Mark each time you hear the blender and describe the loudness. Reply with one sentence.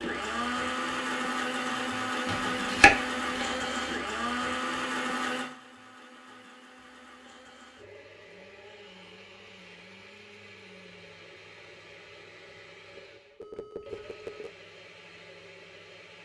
You can hear the blender from 0.0 to 16.2 s, getting quieter.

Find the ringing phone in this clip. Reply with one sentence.
The ringing phone can be heard from 12.9 to 14.5 s.